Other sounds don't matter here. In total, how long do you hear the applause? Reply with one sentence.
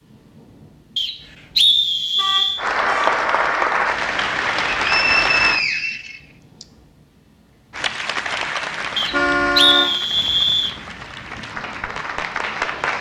You can hear the applause for 8 seconds altogether.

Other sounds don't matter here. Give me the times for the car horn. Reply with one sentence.
The car horn can be heard from 2.1 to 3.2 s and from 9.1 to 9.9 s.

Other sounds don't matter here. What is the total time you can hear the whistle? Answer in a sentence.
You can hear the whistle for 5 seconds altogether.